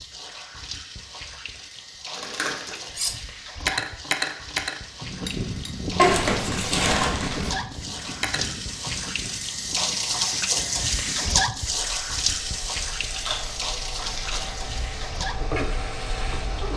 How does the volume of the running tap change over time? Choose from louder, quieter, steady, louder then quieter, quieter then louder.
louder then quieter.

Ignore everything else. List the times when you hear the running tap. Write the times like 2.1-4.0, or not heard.
0.0-16.7.